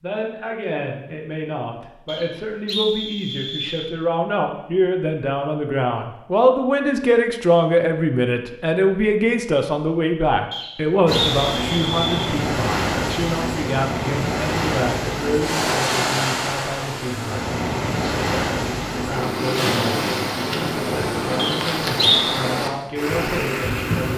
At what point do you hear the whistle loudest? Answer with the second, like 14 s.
22 s.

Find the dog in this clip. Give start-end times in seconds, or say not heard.
not heard.